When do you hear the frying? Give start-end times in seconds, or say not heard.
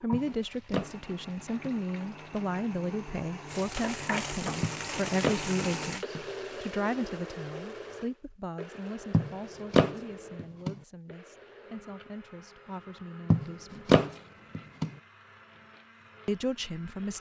0.0-6.0.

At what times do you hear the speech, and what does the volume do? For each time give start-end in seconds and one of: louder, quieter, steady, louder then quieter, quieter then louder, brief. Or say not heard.
0.0-14.0 quieter
16.2-17.1 brief.